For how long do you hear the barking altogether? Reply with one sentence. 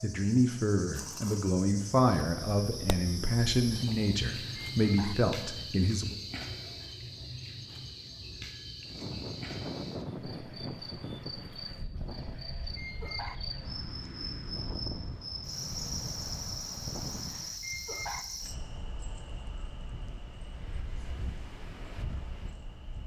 The barking can be heard for 4 seconds in total.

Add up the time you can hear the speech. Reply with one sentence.
The speech can be heard for 6 seconds in total.